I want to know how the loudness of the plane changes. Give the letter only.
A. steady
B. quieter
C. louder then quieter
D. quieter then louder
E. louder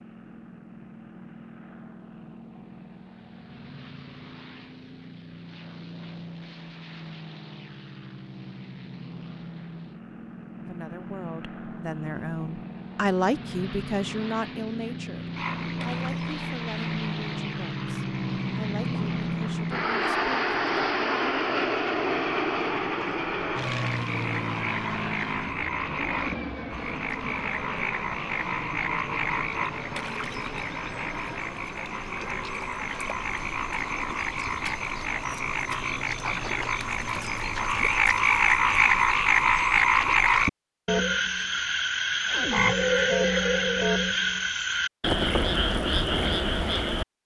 C.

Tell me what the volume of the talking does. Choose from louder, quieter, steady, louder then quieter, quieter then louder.
louder then quieter.